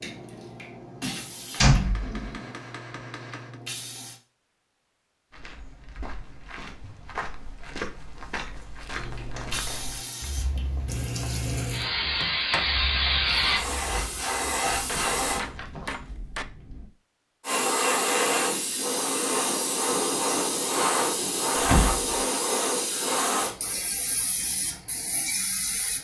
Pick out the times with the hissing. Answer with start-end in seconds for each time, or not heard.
0.0-4.2, 8.9-15.4, 17.4-25.9.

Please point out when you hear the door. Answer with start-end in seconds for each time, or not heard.
1.6-2.2, 12.0-12.7, 13.2-14.2, 21.6-22.2.